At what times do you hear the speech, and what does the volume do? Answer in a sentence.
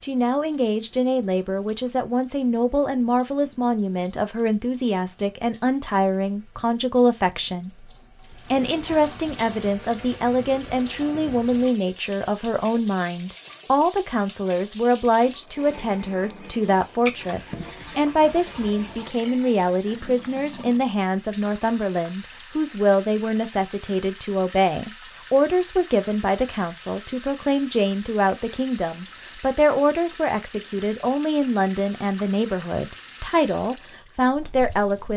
You can hear the speech from 0.0 to 35.1 s, at a steady volume.